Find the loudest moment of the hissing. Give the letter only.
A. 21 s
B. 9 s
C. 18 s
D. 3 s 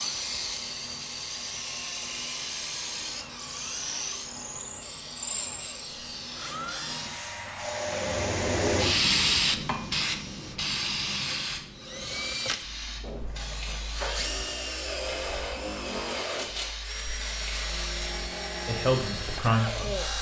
B.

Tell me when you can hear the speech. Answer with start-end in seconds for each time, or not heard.
18.6-20.1.